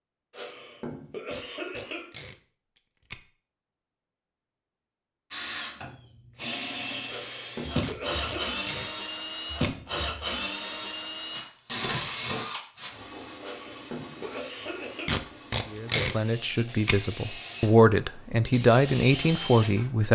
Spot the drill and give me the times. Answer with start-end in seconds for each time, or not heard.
5.3-20.1.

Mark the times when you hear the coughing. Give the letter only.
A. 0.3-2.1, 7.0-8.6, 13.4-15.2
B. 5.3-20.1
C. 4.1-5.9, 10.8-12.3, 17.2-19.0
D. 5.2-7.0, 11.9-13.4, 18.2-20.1
A.